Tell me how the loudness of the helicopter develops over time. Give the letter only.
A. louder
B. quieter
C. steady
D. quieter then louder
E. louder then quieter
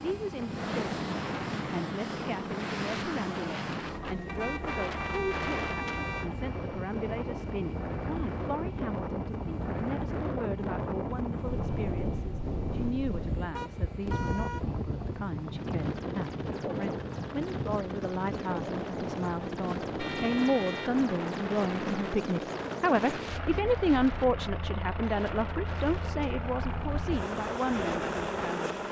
D.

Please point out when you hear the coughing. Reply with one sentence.
The coughing can't be heard in this clip.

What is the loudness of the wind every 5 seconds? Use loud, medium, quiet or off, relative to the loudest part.
medium, loud, loud, loud, medium, medium.